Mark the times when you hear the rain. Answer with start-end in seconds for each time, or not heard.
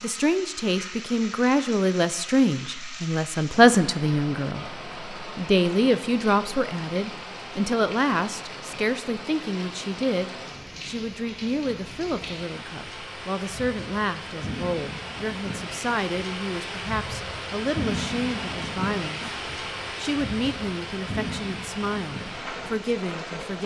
0.0-23.6.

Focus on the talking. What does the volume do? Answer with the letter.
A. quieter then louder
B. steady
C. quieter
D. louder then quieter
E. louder
C.